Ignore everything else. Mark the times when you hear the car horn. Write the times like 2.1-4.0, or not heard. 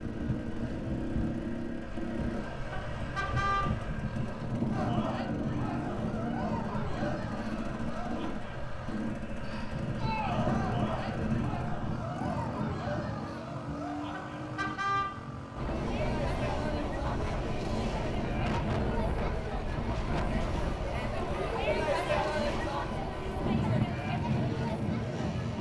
2.7-3.7, 14.1-15.2.